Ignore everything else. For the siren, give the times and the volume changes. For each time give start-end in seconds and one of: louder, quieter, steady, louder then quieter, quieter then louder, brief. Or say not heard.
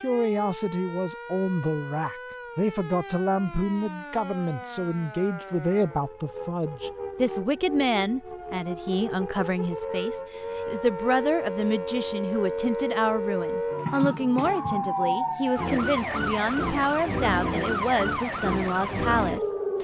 0.0-19.7 louder.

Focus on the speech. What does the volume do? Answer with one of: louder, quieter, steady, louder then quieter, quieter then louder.
steady.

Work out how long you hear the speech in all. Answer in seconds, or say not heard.
20 s.